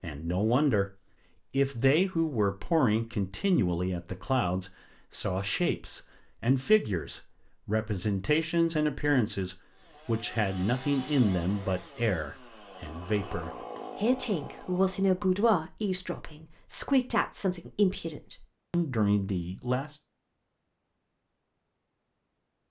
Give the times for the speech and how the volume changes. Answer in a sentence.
You can hear the speech from 0.0 to 19.9 s, at a steady volume.